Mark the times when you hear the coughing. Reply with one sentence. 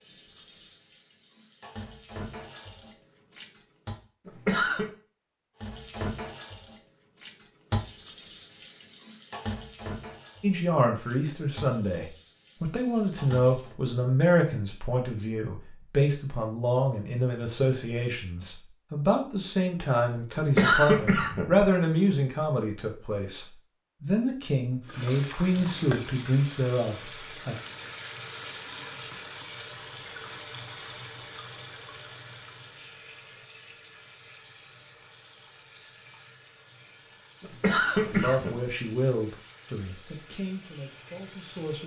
The coughing can be heard from 4.2 to 4.9 s, from 20.4 to 21.7 s and from 37.4 to 38.8 s.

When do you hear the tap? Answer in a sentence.
You can hear the tap from 0.0 to 4.0 s, from 5.6 to 13.8 s and from 24.9 to 41.8 s.